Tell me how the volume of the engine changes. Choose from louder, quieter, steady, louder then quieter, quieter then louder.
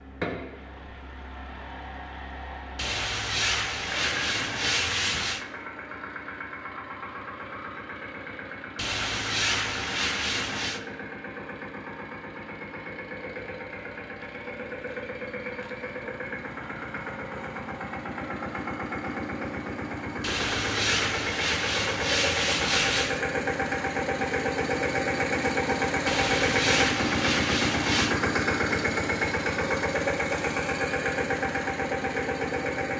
louder.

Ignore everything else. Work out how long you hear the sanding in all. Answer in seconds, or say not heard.
10 s.